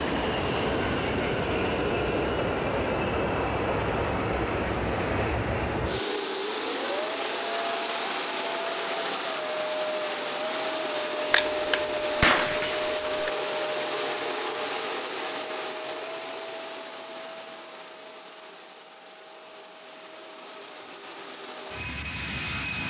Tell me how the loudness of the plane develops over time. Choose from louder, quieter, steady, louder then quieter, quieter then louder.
quieter.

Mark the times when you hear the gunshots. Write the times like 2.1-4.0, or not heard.
11.3-13.3.